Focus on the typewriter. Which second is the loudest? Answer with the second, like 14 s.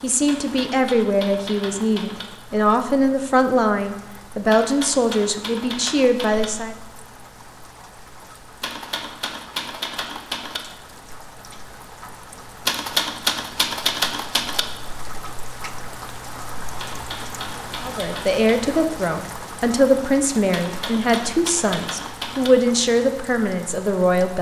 13 s.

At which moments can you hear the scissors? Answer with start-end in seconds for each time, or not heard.
not heard.